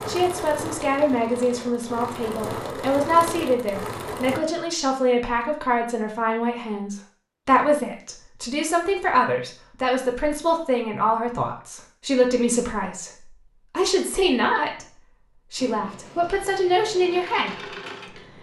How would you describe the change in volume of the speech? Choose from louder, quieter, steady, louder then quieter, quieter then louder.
steady.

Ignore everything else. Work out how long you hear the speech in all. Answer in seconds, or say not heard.
18 s.